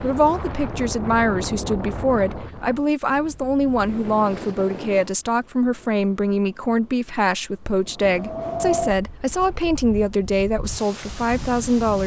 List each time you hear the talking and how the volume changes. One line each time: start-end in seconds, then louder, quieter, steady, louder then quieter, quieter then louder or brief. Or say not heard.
0.0-12.0 steady.